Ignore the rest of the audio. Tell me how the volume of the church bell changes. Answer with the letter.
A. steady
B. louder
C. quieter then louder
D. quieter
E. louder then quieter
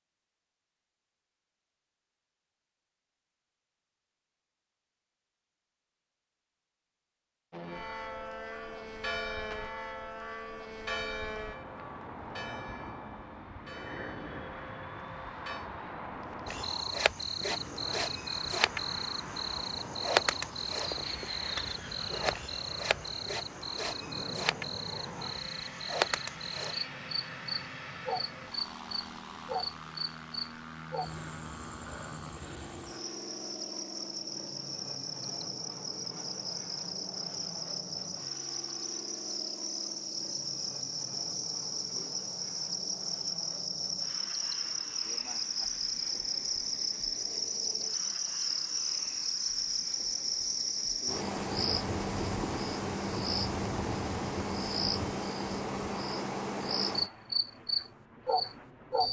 D.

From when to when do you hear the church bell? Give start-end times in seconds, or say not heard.
7.7-15.7.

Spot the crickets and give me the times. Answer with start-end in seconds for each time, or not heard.
16.4-59.0.